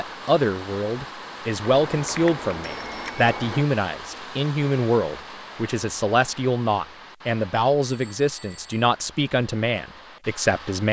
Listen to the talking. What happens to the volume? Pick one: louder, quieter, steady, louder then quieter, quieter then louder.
steady.